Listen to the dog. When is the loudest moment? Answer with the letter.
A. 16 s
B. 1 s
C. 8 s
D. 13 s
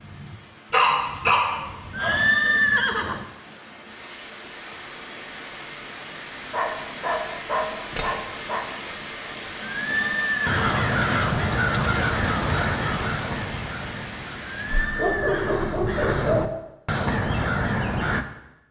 B.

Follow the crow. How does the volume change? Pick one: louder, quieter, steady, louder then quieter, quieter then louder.
quieter then louder.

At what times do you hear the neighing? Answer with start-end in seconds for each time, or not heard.
1.9-3.2, 9.6-10.8, 14.4-15.7.